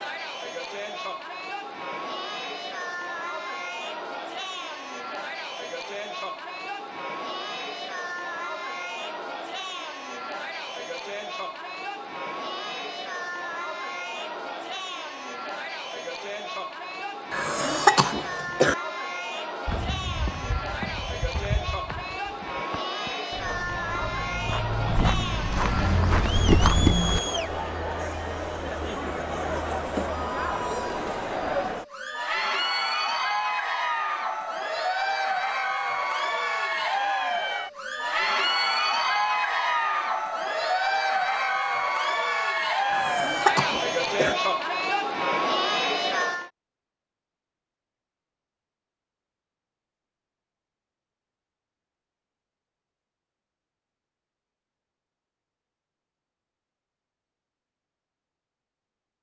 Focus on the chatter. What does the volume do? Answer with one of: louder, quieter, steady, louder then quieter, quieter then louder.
louder.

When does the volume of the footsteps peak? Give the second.
27 s.